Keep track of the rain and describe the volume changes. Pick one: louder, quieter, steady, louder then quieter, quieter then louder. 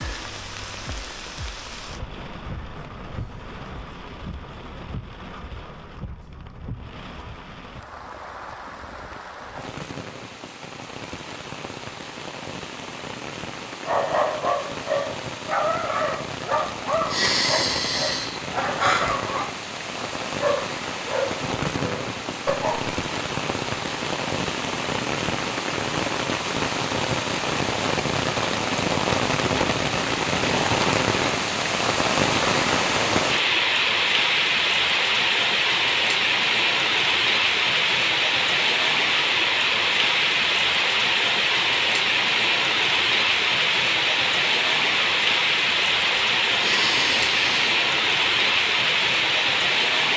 louder.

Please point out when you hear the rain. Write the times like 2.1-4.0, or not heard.
0.0-50.1.